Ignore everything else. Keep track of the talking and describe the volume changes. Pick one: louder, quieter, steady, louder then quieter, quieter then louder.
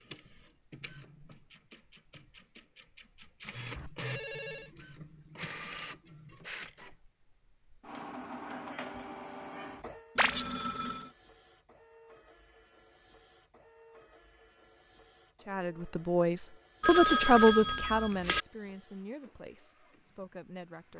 louder then quieter.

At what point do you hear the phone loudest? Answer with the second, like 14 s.
17 s.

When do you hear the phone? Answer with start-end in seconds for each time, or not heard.
3.8-4.7, 10.2-11.1, 16.8-18.4.